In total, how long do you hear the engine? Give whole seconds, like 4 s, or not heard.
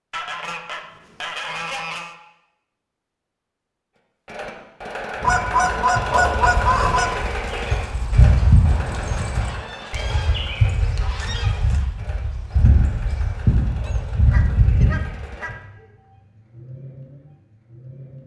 14 s.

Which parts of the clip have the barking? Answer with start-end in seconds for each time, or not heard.
not heard.